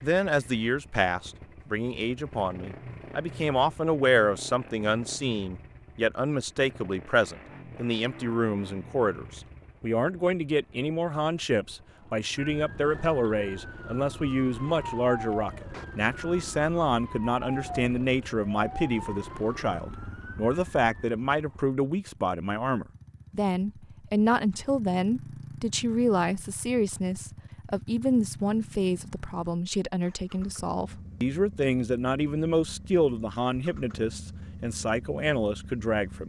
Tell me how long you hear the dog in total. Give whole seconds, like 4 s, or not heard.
not heard.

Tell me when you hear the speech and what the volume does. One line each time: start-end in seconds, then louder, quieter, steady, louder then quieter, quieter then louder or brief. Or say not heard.
0.0-36.2 steady.